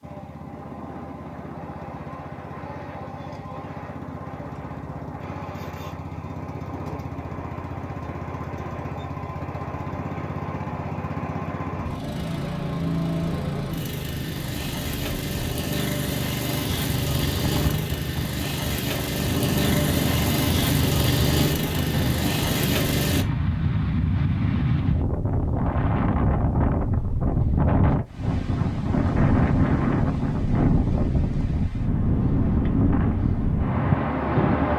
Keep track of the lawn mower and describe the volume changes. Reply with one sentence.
The loudness of the lawn mower goes up.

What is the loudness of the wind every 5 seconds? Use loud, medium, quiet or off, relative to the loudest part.
quiet, quiet, quiet, medium, loud, loud, loud.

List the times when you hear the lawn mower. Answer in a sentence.
The lawn mower can be heard from 0.0 to 23.2 s.